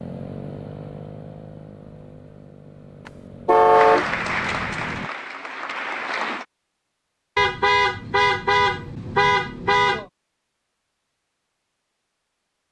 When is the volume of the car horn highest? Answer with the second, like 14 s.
4 s.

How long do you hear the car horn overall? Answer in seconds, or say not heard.
4 s.